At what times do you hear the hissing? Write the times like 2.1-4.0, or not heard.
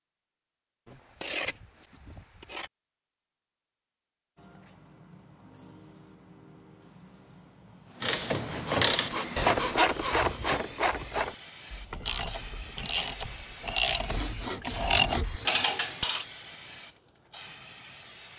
4.3-18.3.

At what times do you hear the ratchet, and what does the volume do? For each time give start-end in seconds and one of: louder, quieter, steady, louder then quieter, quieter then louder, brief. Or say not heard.
8.0-16.2 quieter then louder.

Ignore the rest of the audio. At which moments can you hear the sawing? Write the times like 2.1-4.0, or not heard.
0.8-2.7, 8.3-10.7, 14.0-15.7.